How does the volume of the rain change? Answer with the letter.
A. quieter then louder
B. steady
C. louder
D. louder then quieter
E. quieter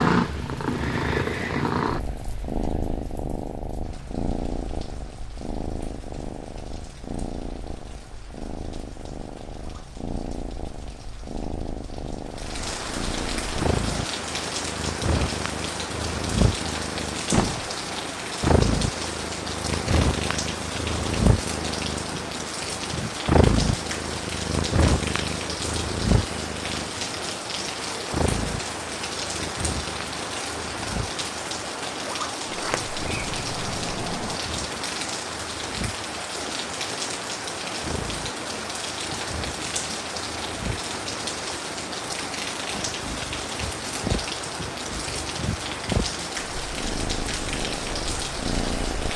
C.